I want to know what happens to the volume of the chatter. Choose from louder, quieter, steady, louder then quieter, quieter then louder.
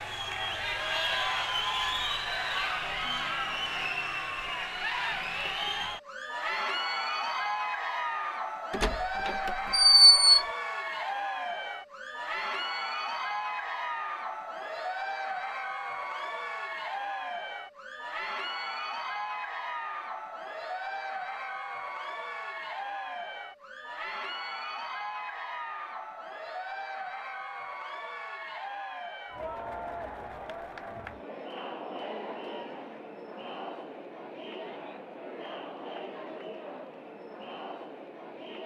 quieter.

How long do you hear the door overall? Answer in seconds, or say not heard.
2 s.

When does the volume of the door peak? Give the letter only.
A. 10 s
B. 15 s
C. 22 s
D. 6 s
A.